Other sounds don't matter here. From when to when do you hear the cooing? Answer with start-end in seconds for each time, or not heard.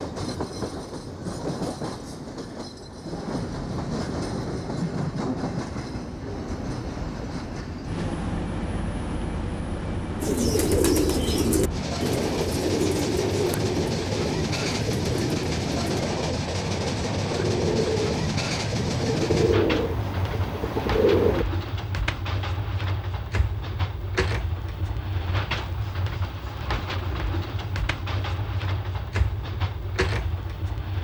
10.2-21.4.